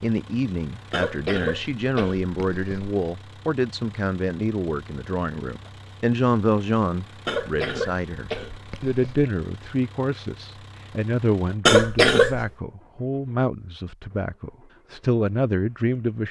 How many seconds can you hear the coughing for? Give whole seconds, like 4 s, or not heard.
5 s.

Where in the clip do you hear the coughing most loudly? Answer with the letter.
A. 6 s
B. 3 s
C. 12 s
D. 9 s
C.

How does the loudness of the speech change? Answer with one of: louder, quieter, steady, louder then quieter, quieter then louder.
steady.